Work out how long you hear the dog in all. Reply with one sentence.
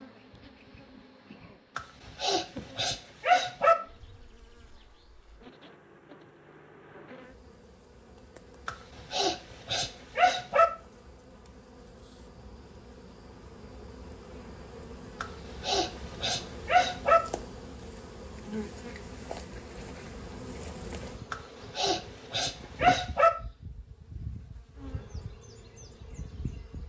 The dog can be heard for 8 seconds in total.